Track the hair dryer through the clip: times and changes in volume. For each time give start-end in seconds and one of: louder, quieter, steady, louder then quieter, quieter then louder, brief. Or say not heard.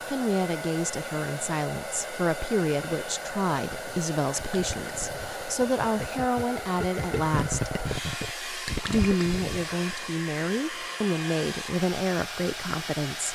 0.0-13.3 steady.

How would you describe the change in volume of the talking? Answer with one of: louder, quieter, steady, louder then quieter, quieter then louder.
steady.